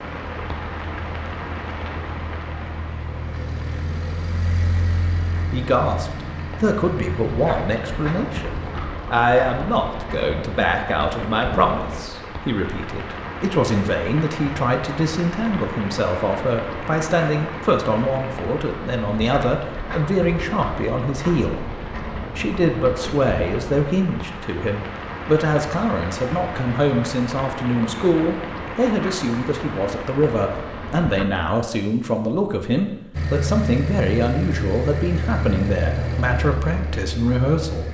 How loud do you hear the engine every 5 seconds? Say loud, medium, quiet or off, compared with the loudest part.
medium, medium, off, off, off, off, loud, loud.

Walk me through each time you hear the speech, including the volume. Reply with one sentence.
The speech can be heard from 5.5 to 37.8 s, at a steady volume.